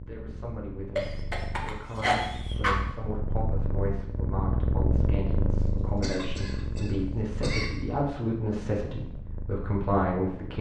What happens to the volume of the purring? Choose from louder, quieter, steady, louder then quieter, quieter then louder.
louder then quieter.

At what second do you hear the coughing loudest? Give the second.
2 s.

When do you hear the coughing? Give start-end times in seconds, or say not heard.
0.9-2.8, 5.6-7.8.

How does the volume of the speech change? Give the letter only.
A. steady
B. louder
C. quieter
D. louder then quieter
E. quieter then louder
B.